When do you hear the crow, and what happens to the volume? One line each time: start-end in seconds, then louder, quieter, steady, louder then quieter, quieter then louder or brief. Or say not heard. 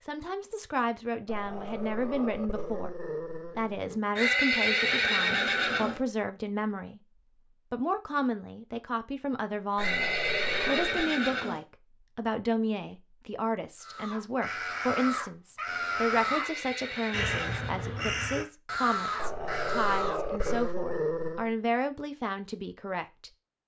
13.8-20.8 steady.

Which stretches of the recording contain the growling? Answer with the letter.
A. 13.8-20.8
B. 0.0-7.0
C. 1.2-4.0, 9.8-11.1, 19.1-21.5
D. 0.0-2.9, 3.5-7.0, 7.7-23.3
C.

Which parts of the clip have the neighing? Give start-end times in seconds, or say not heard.
4.2-6.0, 9.8-11.7, 16.2-17.8.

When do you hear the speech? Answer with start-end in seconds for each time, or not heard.
0.0-2.9, 3.5-7.0, 7.7-23.3.